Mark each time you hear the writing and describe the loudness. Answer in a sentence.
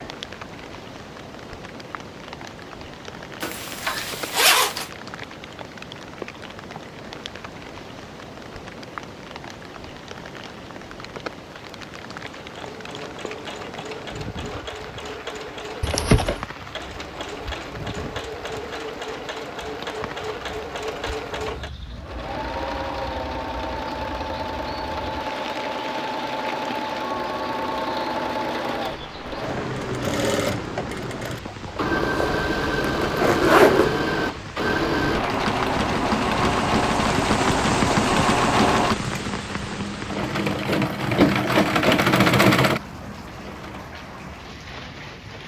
You can't hear the writing here.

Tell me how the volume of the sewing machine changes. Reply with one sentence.
The loudness of the sewing machine goes up.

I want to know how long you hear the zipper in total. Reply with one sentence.
The zipper can be heard for 4 seconds in total.